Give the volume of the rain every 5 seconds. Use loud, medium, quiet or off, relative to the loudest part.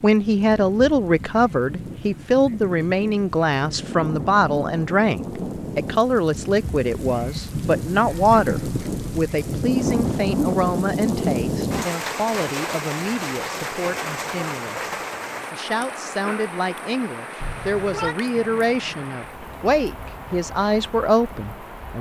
medium, loud, loud, medium, quiet.